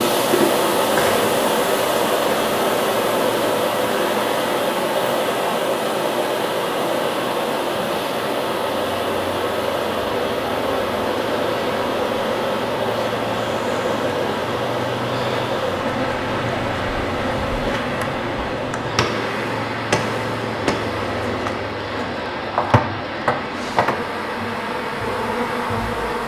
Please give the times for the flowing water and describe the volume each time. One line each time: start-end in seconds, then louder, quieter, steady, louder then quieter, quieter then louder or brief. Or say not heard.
0.0-26.2 quieter.